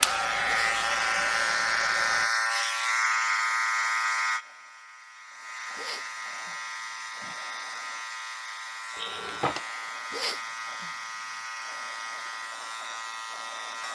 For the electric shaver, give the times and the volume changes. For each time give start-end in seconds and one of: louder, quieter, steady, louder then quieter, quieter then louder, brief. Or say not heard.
0.0-13.8 quieter.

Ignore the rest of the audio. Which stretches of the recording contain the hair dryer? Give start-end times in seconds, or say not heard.
0.0-2.3.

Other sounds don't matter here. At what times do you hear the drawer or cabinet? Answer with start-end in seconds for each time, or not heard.
8.9-9.6.